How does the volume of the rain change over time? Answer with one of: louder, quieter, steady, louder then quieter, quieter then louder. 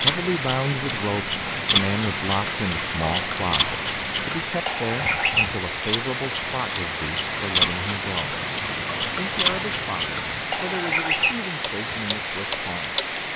steady.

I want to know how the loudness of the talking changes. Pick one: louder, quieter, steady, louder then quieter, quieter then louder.
quieter.